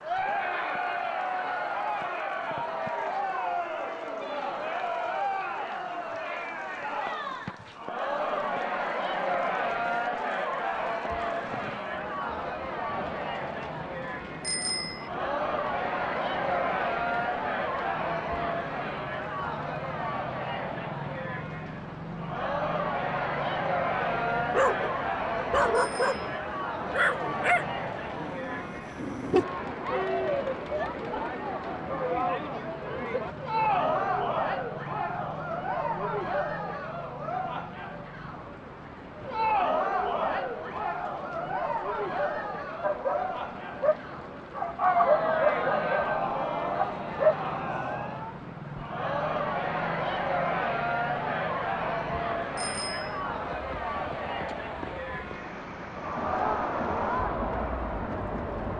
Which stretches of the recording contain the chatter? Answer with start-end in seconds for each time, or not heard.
0.0-58.7.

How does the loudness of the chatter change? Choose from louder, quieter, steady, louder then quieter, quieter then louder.
steady.